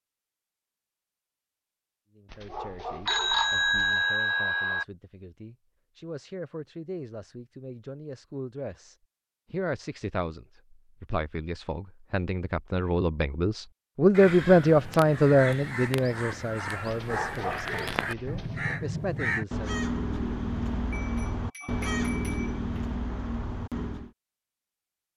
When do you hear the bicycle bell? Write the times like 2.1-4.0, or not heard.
3.0-4.8, 20.9-22.9.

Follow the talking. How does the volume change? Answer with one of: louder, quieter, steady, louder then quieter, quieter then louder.
louder then quieter.